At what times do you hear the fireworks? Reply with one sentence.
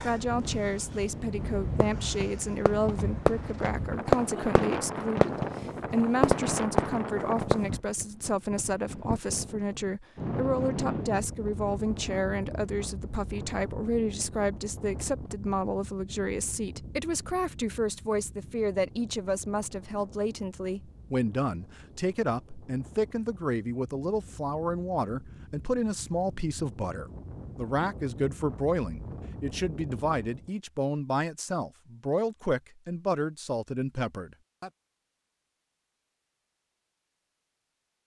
You can hear the fireworks from 1.4 to 7.8 s.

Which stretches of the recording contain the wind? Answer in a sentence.
The wind can be heard from 0.0 to 30.6 s.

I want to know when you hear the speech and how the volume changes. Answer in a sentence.
You can hear the speech from 0.0 to 34.7 s, at a steady volume.